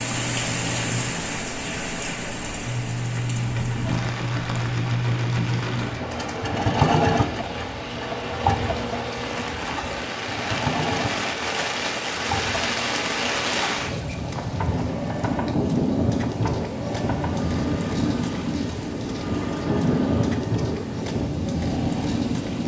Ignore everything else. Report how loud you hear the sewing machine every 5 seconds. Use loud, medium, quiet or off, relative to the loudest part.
loud, loud, medium, medium, medium.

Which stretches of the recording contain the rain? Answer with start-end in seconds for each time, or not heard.
0.0-22.6.